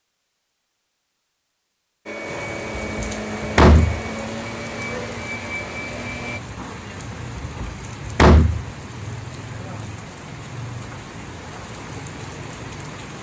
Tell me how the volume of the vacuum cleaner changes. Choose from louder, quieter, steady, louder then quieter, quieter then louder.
steady.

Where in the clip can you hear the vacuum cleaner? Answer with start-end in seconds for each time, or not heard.
2.0-6.4.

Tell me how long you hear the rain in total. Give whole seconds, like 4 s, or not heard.
11 s.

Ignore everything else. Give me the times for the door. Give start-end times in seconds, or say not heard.
2.8-4.0, 7.4-8.7.